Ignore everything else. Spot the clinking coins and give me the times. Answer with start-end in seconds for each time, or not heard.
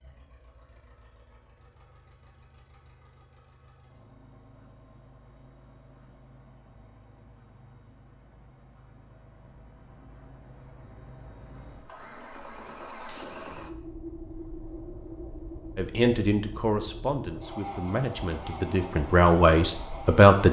13.1-13.5.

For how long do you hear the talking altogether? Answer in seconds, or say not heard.
5 s.